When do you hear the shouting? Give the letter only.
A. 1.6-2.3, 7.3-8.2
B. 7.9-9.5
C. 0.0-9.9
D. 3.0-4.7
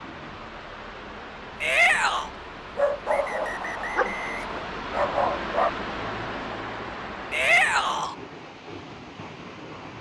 A.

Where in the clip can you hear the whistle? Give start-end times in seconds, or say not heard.
3.0-4.7.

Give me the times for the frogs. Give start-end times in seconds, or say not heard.
not heard.